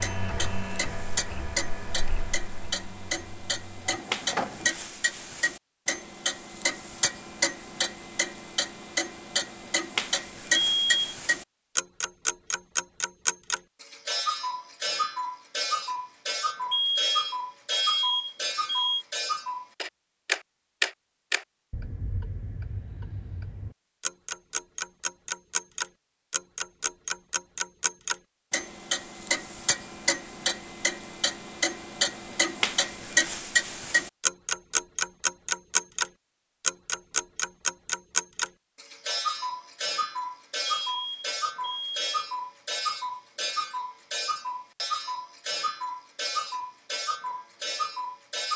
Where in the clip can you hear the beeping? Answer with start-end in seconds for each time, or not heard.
10.5-11.1, 16.7-19.1, 40.7-42.0.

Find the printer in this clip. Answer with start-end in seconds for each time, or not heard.
0.0-4.7.